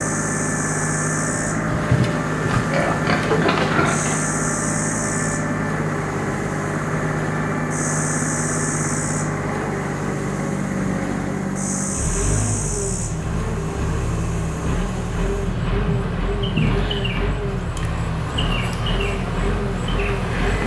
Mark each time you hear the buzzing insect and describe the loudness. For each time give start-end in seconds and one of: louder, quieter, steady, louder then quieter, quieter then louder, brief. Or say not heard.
0.0-20.6 steady.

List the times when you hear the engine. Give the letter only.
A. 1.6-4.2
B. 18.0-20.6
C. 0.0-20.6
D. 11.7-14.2
C.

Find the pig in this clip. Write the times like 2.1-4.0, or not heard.
1.6-4.2.